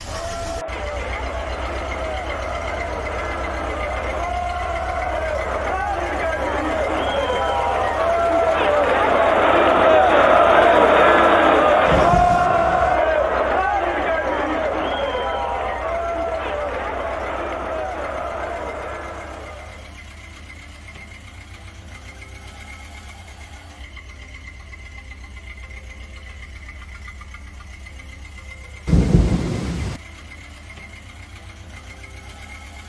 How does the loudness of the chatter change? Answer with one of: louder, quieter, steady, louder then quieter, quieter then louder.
louder then quieter.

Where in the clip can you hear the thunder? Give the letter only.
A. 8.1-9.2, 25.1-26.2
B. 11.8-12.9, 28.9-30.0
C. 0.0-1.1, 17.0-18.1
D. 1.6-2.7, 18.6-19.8
B.